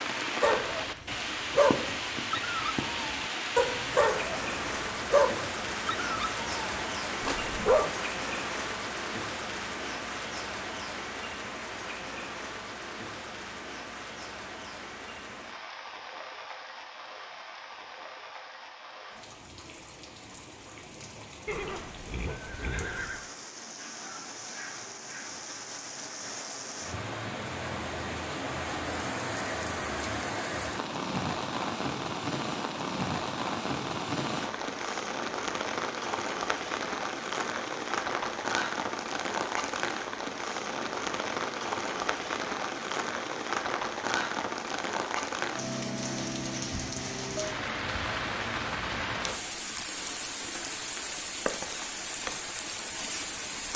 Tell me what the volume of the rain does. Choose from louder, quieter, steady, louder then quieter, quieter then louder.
quieter then louder.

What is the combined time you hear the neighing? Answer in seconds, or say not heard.
2 s.